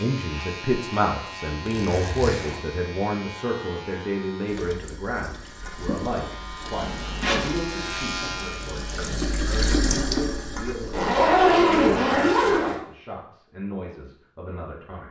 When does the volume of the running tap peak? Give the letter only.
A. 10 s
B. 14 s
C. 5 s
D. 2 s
A.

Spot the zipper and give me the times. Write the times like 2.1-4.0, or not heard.
1.6-2.6, 6.8-7.6, 10.8-12.8.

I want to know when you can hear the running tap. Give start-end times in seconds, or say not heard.
4.5-12.0.